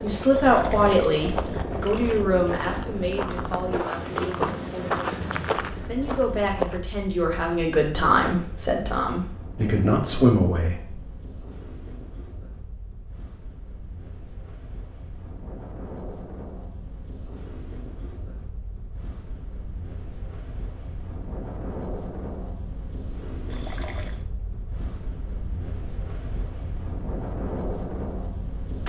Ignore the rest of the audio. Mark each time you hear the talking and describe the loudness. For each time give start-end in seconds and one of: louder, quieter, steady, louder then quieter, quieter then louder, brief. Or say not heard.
0.0-10.8 quieter then louder.